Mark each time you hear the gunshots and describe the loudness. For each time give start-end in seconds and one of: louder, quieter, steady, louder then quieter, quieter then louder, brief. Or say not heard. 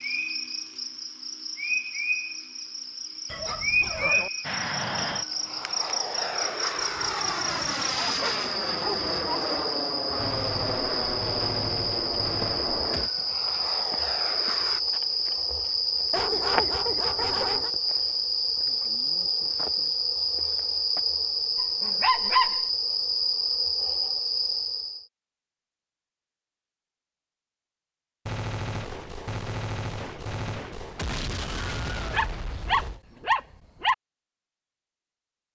10.2-13.1 brief
28.2-33.0 steady.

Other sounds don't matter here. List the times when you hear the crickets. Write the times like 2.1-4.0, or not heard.
0.0-25.1.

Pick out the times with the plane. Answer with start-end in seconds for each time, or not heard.
4.4-14.8.